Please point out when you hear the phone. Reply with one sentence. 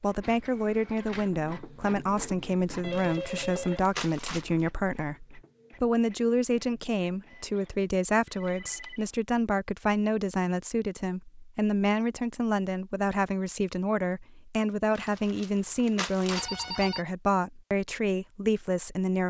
You can hear the phone from 2.8 to 3.8 s, from 8.2 to 9.1 s and from 16.2 to 17.1 s.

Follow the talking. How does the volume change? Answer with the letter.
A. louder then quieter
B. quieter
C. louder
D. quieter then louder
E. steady
E.